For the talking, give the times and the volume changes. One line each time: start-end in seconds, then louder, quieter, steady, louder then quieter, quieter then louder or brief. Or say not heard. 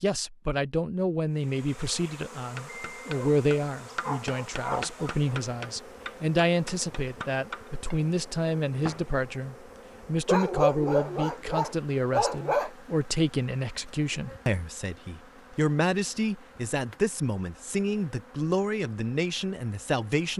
0.0-20.3 steady.